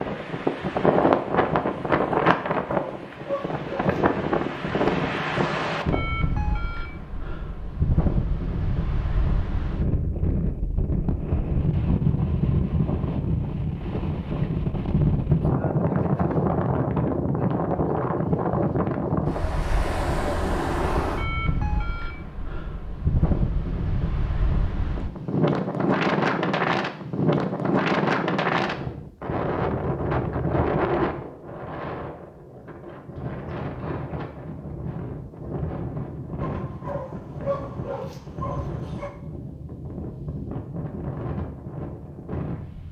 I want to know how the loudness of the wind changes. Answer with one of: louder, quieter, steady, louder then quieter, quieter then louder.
quieter.